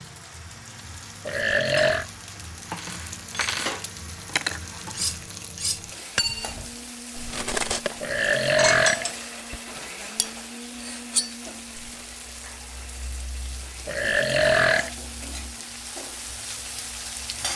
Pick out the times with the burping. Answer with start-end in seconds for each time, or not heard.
1.2-2.0, 8.0-9.6, 13.8-14.9.